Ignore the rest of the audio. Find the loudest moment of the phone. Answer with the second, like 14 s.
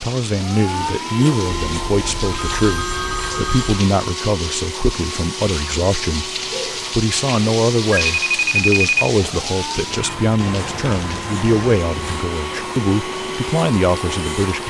9 s.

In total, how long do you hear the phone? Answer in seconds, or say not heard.
4 s.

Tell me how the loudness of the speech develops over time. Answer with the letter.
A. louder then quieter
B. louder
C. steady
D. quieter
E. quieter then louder
C.